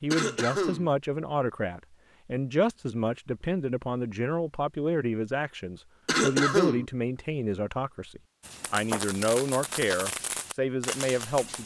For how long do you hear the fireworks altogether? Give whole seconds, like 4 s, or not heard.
3 s.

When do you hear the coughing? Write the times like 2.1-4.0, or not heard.
0.1-0.9, 6.0-6.8.